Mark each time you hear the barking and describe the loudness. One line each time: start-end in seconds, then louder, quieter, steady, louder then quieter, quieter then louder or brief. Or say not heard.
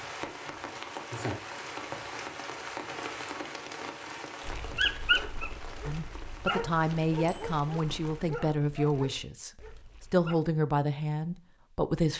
4.5-10.3 quieter.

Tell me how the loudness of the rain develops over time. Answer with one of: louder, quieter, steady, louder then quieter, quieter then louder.
quieter.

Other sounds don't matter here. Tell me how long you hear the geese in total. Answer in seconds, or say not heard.
not heard.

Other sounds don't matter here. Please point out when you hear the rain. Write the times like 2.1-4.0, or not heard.
0.0-8.3.